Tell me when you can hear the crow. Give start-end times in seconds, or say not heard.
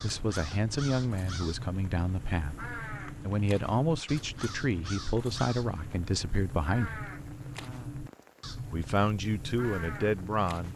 0.0-10.7.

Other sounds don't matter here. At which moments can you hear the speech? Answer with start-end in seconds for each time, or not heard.
0.0-7.0, 8.7-10.7.